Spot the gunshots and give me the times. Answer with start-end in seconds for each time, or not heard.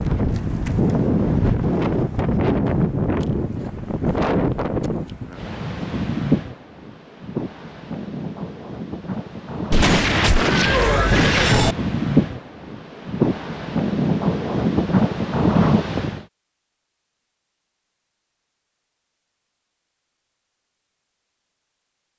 9.7-11.8.